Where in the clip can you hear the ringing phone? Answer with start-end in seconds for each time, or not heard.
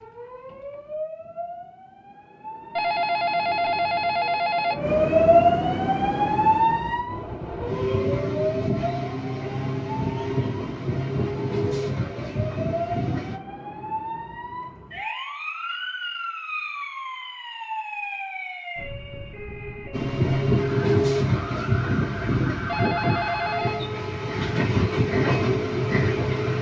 2.8-4.8, 22.6-23.9.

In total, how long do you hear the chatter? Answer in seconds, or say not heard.
not heard.